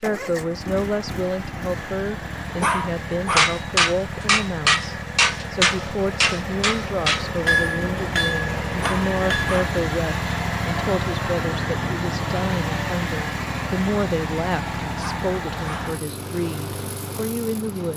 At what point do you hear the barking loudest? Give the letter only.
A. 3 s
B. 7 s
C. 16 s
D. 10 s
A.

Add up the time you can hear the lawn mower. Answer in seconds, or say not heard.
18 s.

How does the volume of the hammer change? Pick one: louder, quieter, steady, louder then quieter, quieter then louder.
quieter.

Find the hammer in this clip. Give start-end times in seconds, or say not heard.
3.4-9.6.